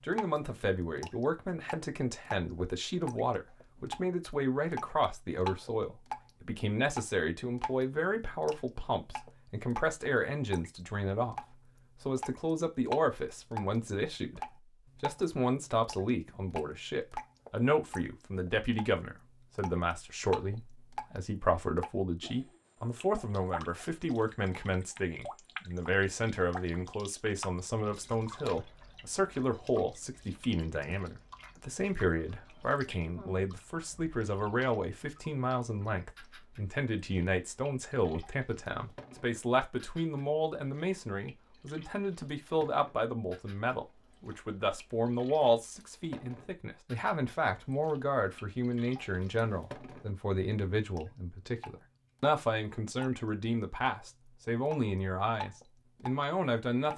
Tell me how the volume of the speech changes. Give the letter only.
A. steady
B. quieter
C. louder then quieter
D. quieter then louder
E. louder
A.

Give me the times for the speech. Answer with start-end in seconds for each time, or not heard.
0.0-56.9.